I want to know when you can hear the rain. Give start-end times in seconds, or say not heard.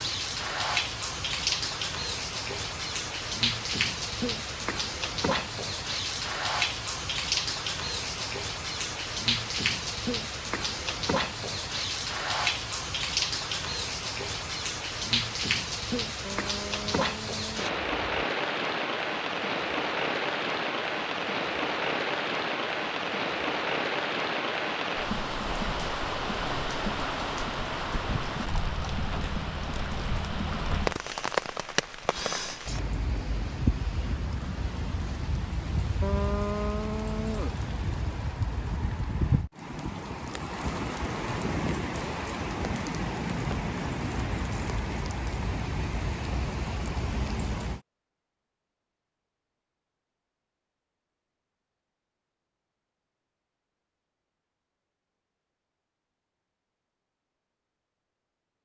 0.0-47.8.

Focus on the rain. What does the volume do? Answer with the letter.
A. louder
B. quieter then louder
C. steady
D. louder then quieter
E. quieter
C.